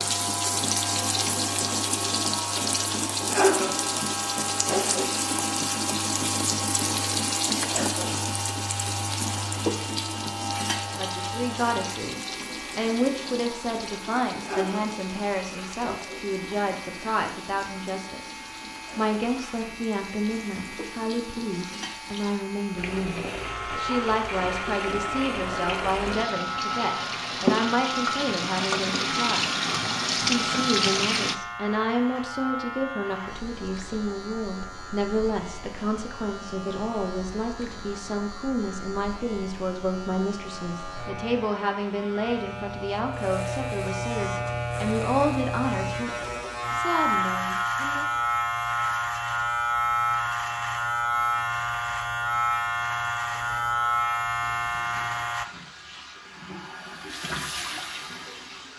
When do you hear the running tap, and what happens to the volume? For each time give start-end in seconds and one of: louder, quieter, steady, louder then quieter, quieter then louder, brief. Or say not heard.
0.0-31.4 quieter then louder
54.4-58.7 louder.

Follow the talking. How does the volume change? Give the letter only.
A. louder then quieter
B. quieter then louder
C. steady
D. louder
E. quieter
C.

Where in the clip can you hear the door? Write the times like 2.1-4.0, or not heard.
not heard.